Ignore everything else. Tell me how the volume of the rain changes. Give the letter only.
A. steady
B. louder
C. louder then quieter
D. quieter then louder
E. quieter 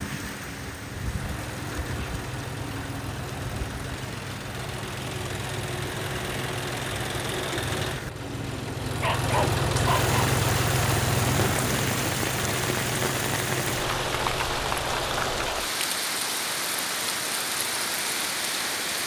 B.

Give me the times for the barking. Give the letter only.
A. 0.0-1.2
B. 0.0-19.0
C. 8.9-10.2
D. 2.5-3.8
C.